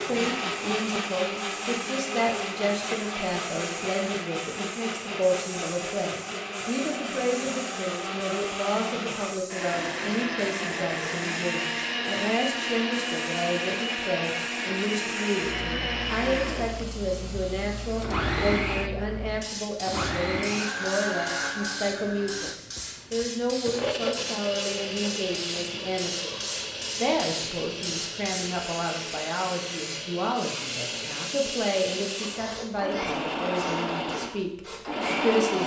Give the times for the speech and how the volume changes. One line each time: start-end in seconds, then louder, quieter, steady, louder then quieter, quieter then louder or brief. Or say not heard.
0.0-35.6 steady.